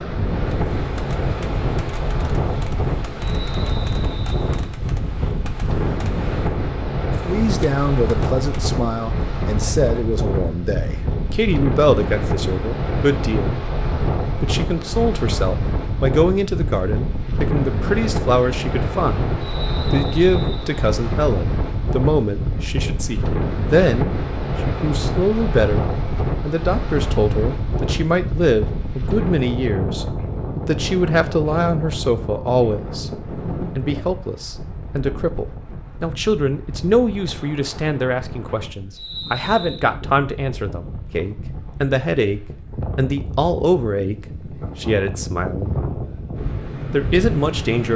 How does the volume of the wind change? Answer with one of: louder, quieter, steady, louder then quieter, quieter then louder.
quieter.